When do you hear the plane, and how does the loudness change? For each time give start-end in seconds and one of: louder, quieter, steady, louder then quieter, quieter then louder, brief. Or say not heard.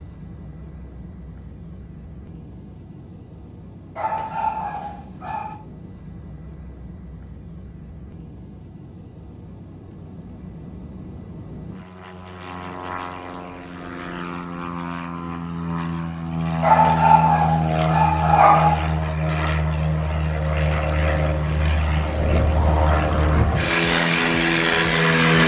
0.0-25.4 louder.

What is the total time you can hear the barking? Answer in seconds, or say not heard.
4 s.